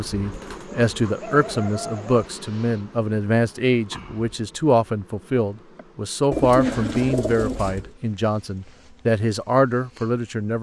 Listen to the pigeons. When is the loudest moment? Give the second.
7 s.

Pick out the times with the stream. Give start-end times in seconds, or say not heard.
not heard.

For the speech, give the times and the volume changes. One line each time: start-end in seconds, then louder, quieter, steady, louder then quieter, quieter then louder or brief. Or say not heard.
0.0-10.5 steady.